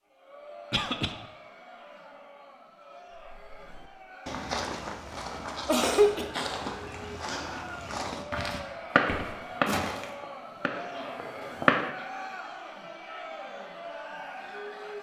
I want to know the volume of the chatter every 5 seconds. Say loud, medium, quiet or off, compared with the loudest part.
medium, loud, loud.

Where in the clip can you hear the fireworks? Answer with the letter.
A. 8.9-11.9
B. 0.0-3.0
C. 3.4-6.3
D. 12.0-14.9
A.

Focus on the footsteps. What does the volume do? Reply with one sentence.
The loudness of the footsteps stays about the same.